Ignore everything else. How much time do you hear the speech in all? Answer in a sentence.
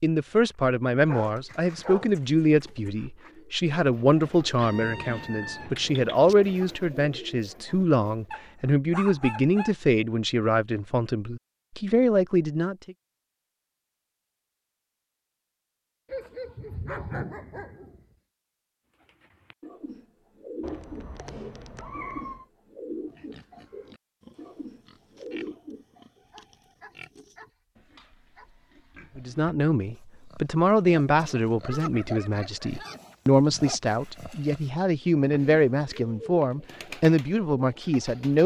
The speech can be heard for 22 seconds in total.